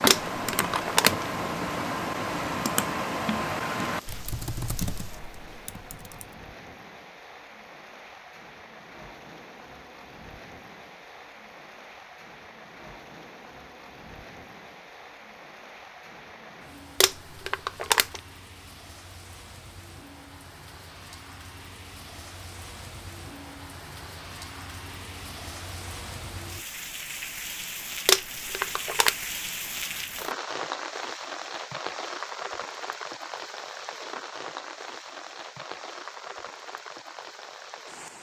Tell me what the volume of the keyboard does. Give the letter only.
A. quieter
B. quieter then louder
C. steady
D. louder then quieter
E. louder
A.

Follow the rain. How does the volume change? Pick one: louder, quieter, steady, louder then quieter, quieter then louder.
louder.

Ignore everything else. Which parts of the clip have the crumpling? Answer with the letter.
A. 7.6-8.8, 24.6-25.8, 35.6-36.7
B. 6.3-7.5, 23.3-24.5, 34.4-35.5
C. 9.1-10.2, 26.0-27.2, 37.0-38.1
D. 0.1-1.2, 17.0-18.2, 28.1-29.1
D.